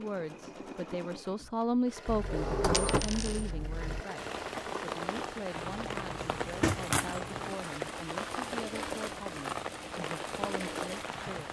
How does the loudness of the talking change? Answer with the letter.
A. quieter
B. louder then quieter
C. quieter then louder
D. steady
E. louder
A.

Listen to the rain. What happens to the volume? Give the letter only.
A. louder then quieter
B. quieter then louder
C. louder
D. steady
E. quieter
D.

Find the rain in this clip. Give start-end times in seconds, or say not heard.
4.2-11.4.